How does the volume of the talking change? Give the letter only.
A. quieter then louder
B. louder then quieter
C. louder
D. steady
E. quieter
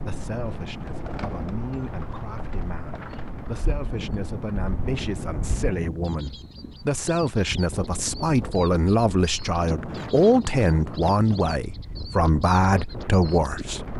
C.